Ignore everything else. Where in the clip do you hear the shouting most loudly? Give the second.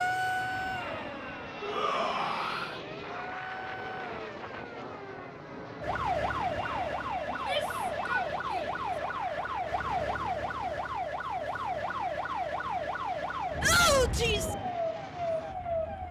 14 s.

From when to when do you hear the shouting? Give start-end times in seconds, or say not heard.
1.6-2.8, 7.3-8.7, 13.6-14.6.